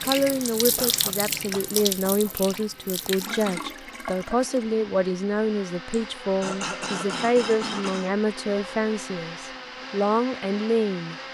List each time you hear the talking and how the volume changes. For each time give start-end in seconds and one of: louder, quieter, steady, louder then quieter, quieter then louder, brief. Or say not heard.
0.0-11.2 steady.